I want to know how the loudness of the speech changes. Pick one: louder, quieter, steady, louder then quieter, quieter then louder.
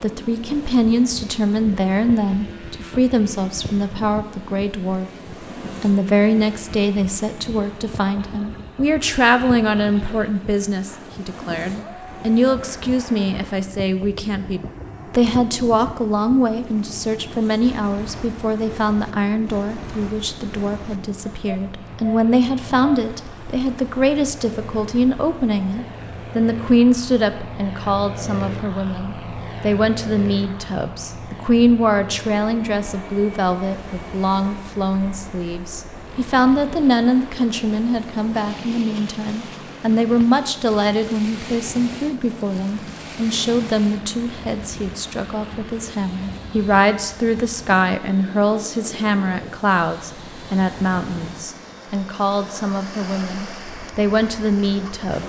steady.